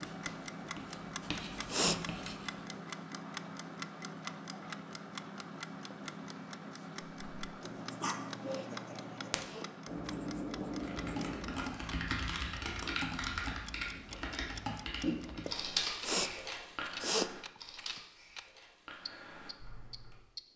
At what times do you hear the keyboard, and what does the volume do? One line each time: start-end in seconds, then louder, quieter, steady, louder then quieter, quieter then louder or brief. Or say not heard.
10.8-20.2 quieter.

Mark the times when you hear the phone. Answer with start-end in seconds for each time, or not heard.
not heard.